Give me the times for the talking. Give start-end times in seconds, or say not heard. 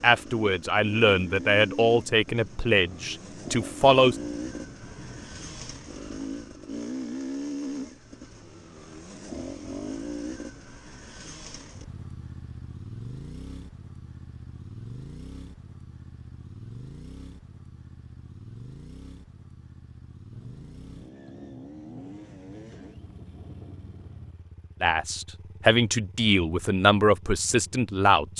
0.0-4.2, 24.8-28.3.